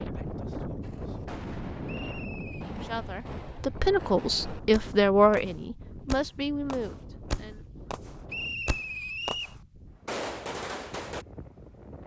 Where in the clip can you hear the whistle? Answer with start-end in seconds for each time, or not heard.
1.9-2.6, 8.2-9.6.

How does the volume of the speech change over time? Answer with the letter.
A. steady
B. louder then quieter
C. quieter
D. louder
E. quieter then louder
B.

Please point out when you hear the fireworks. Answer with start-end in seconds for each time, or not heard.
0.8-11.2.